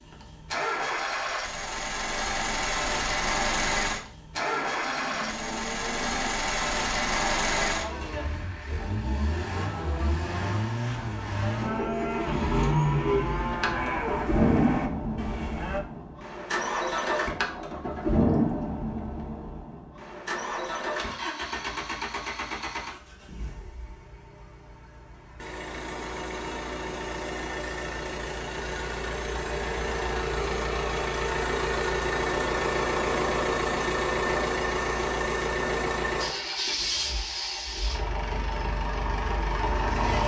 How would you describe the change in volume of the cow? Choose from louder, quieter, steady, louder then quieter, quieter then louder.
louder.